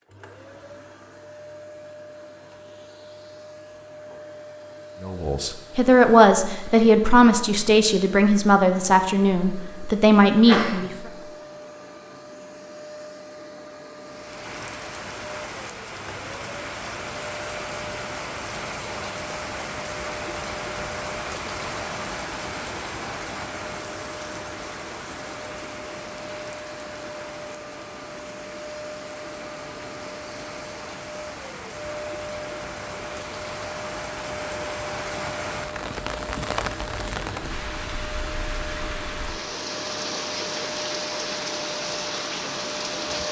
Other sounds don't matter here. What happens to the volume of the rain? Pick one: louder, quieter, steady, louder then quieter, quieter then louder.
quieter then louder.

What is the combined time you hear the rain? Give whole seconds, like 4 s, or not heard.
29 s.